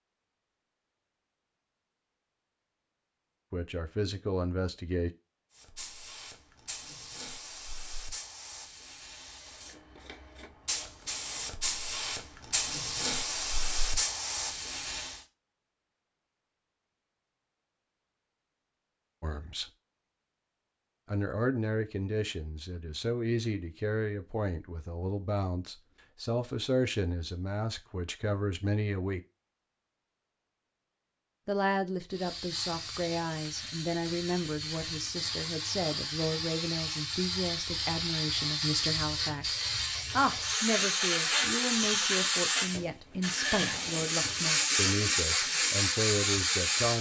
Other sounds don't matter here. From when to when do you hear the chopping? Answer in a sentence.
You can't hear the chopping here.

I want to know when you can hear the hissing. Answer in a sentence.
The hissing can be heard from 5.5 to 15.2 s and from 32.1 to 46.9 s.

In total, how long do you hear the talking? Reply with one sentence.
You can hear the talking for 25 seconds altogether.